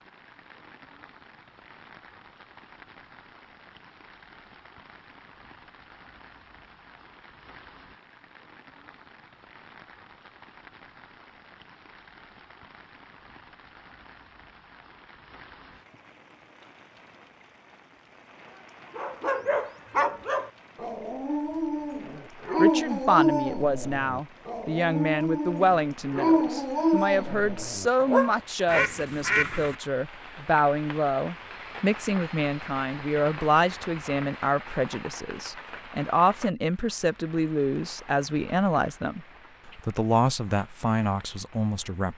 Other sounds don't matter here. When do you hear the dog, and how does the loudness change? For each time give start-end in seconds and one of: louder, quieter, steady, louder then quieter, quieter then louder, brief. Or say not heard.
18.9-28.9 steady.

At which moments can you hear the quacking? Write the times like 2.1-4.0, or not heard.
28.6-29.8.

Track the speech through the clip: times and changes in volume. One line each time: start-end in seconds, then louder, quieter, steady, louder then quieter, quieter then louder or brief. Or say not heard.
22.6-42.1 steady.